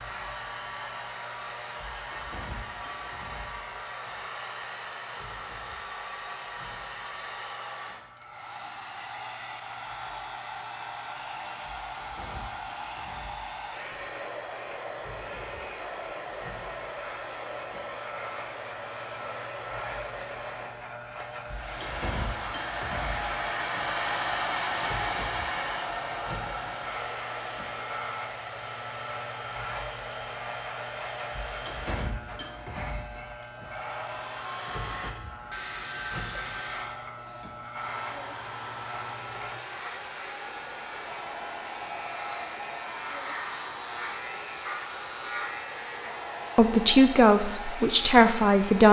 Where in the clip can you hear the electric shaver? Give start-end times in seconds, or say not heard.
0.0-48.8.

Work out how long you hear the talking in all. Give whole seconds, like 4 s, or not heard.
2 s.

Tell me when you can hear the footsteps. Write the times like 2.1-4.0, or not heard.
not heard.